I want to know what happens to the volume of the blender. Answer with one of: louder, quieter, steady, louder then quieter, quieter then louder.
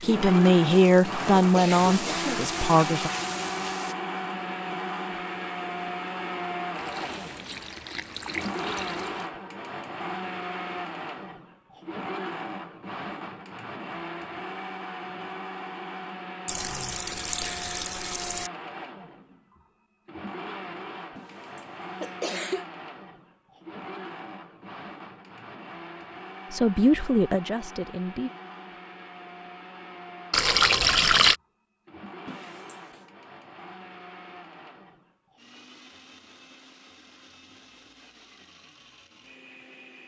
quieter.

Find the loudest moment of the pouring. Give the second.
31 s.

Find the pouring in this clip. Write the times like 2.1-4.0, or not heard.
6.8-9.3, 16.4-18.5, 30.3-31.4.